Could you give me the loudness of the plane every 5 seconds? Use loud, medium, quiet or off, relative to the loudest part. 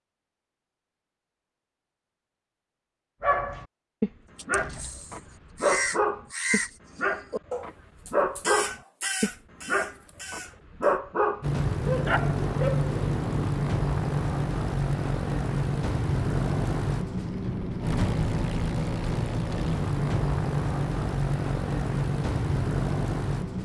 off, off, loud, loud, loud.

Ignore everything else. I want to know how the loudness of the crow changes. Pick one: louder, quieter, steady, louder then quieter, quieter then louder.
quieter.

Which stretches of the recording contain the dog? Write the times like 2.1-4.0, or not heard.
3.2-13.6.